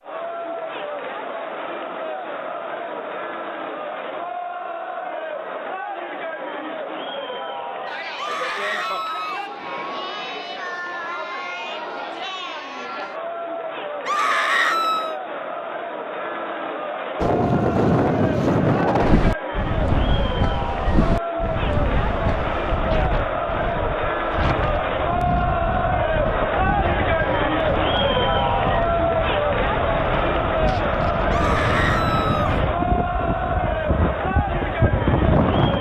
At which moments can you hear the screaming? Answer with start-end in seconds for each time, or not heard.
8.2-9.4, 14.1-15.2, 31.3-32.6.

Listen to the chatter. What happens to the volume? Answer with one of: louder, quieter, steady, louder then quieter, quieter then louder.
louder.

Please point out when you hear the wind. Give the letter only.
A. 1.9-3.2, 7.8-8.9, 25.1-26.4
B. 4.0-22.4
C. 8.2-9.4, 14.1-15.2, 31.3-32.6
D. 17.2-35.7
D.